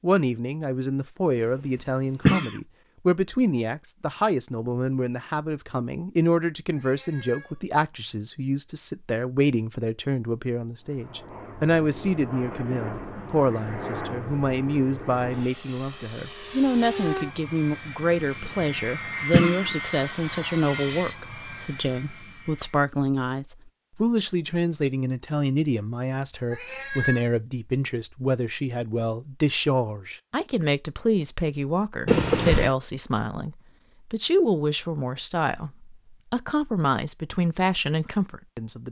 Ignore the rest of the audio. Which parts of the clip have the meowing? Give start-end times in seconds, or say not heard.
6.8-7.6, 26.5-27.2.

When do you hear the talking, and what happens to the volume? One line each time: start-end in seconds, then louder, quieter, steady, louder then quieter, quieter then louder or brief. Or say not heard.
0.0-38.8 steady.